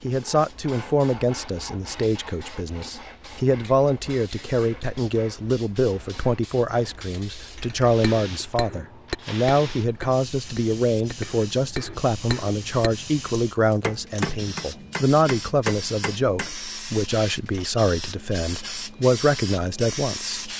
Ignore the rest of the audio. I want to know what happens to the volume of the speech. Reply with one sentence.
The volume of the speech stays about the same.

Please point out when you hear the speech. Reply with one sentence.
You can hear the speech from 0.0 to 20.5 s.